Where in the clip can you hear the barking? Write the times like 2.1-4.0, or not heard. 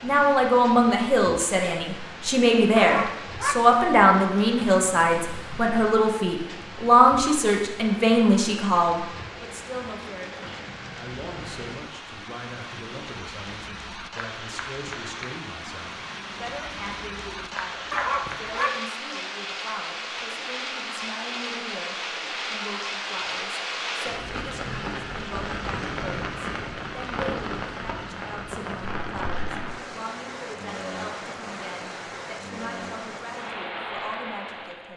2.8-3.6, 17.9-18.8.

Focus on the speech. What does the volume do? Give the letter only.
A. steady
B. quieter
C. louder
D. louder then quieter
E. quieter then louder
B.